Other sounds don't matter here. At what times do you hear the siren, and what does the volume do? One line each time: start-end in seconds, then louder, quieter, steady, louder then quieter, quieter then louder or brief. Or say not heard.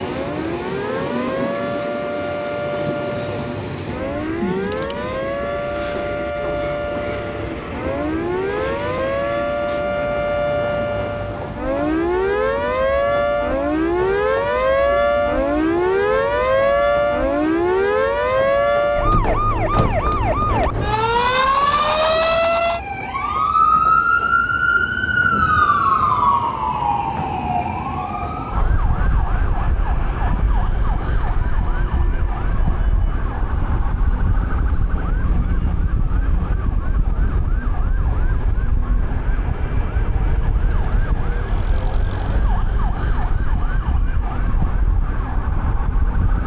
0.0-46.4 louder then quieter.